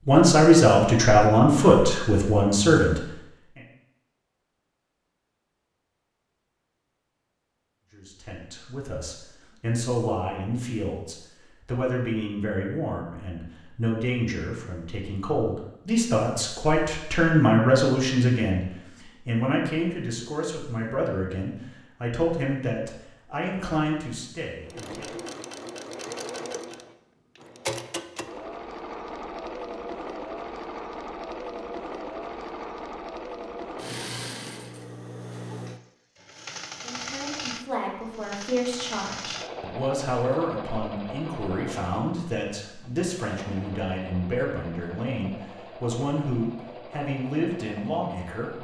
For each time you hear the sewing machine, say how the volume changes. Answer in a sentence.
The sewing machine can be heard from 24.6 to 48.5 s, getting quieter.